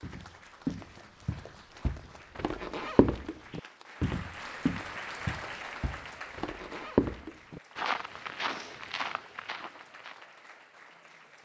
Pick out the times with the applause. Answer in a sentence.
You can hear the applause from 0.0 to 11.4 s.